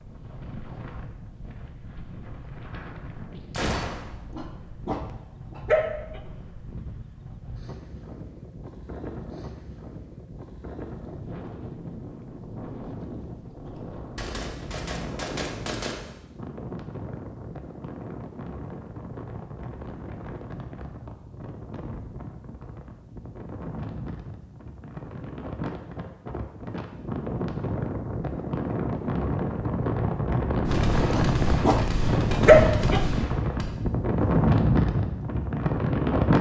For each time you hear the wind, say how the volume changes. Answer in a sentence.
You can hear the wind from 0.0 to 36.3 s, getting louder.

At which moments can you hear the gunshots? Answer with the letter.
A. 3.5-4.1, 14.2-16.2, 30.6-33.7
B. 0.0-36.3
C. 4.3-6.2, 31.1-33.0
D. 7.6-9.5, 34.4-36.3
A.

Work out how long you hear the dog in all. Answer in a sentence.
The dog can be heard for 4 seconds in total.